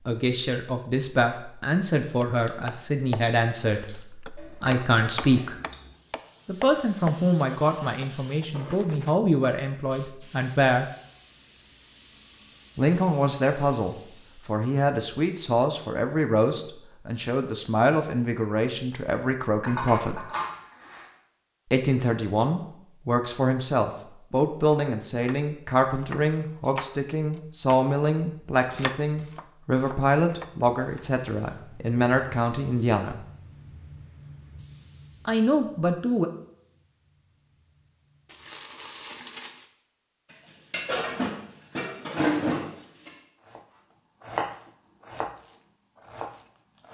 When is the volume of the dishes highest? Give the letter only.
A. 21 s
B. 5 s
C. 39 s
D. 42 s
D.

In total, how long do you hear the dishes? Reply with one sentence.
You can hear the dishes for 6 seconds altogether.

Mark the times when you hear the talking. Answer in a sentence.
The talking can be heard from 0.1 to 5.5 s, from 6.5 to 10.8 s, from 12.8 to 20.2 s, from 21.7 to 33.2 s and from 35.2 to 36.3 s.